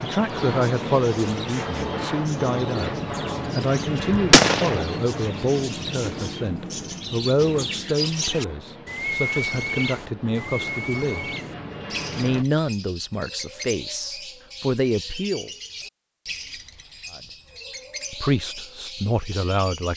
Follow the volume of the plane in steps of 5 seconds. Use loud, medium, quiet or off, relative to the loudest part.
loud, medium, medium, off.